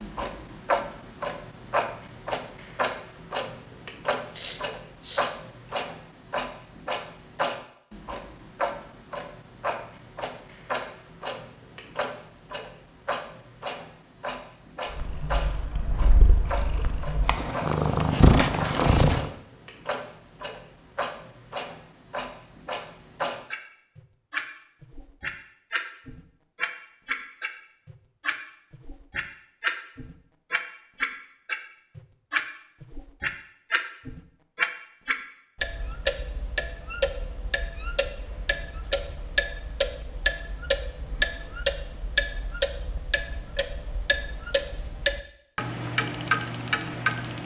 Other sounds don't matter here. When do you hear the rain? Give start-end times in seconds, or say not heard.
not heard.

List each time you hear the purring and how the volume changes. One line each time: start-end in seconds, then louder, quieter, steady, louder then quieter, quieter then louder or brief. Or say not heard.
14.9-19.3 louder.